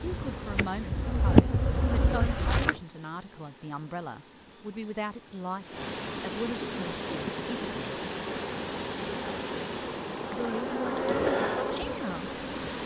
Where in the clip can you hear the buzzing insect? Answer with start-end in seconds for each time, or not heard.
0.0-2.8, 6.8-12.8.